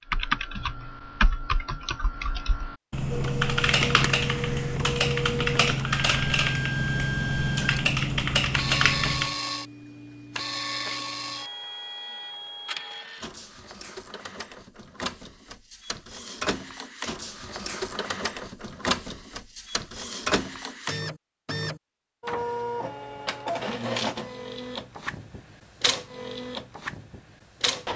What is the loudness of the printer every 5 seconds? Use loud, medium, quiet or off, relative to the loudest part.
loud, loud, medium, loud, loud, loud.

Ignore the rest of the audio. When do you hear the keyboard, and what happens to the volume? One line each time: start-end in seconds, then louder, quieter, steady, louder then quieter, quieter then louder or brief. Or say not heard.
0.1-9.3 louder.